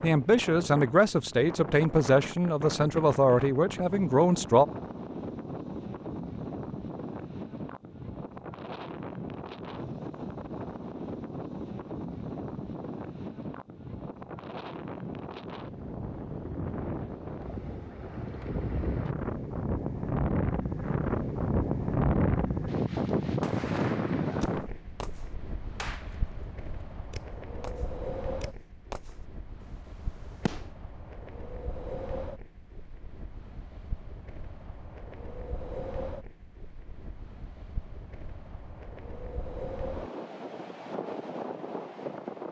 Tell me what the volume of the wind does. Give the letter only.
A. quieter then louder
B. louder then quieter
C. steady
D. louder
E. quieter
B.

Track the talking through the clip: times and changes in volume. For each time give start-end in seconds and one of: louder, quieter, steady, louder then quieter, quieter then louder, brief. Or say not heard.
0.0-4.7 steady.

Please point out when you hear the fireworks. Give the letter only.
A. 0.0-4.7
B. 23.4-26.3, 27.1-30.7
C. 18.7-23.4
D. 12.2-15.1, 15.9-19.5
B.